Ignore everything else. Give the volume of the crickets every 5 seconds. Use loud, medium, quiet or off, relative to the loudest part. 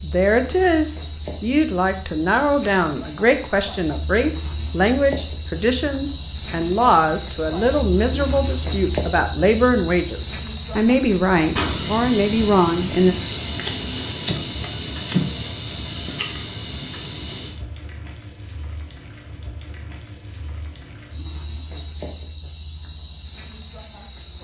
medium, loud, loud, medium, medium.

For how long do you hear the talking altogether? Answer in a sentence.
You can hear the talking for 13 seconds altogether.